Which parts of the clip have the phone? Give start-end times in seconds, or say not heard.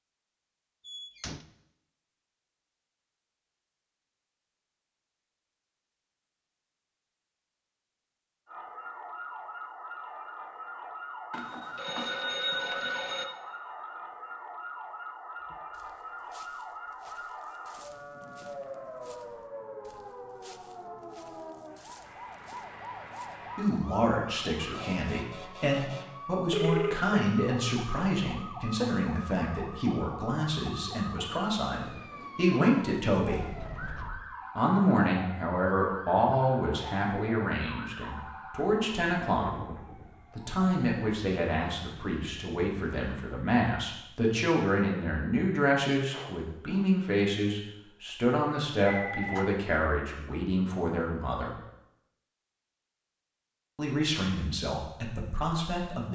11.3-13.2, 26.5-27.3, 48.9-49.5.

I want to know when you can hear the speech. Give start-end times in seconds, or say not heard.
23.6-33.5, 34.5-51.5, 53.8-56.0.